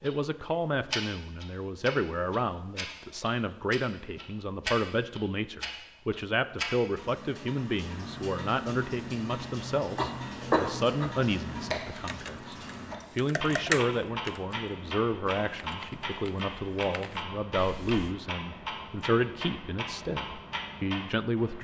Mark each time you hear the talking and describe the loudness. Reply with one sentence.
The talking can be heard from 0.0 to 21.5 s, at a steady volume.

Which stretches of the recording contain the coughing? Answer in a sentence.
The coughing can be heard from 9.9 to 11.2 s.